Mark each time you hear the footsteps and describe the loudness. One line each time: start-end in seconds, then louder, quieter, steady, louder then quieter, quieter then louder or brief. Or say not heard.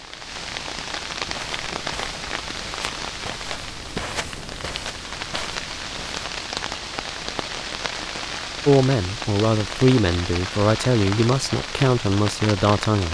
1.1-6.5 louder then quieter.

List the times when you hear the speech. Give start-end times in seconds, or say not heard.
8.7-13.0.